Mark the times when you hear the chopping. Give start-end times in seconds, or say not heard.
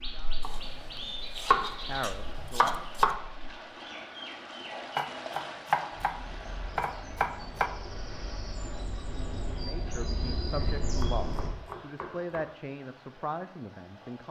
0.4-3.1, 5.0-6.2, 6.8-7.7, 10.8-12.4.